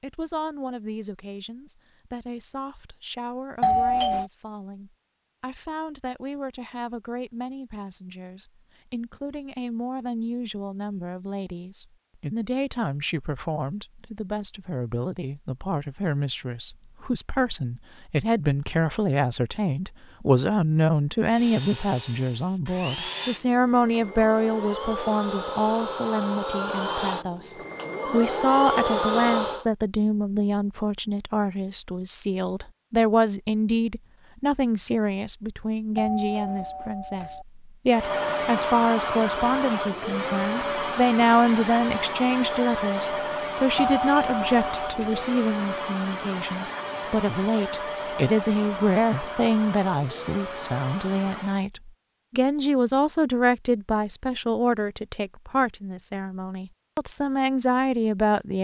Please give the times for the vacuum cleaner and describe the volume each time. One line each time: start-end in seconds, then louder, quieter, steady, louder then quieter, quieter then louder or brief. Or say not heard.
21.2-29.6 louder
37.9-51.6 quieter.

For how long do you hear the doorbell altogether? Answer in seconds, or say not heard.
4 s.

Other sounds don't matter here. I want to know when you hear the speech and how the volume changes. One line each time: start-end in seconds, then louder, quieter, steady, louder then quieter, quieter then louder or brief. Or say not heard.
0.0-58.5 louder.